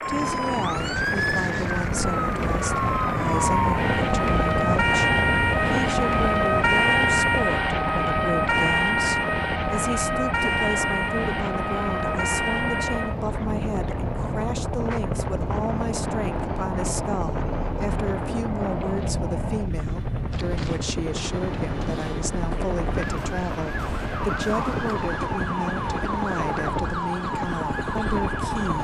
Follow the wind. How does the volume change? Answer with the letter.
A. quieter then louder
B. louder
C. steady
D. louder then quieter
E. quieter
E.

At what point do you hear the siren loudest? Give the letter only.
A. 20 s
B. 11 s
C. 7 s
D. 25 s
C.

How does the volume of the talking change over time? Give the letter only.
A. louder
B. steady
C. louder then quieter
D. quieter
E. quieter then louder
B.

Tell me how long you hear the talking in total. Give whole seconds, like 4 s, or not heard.
29 s.